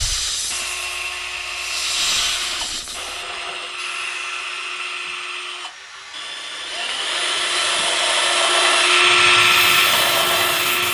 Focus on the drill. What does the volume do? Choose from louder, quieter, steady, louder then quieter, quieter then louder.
louder.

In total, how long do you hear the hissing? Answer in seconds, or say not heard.
11 s.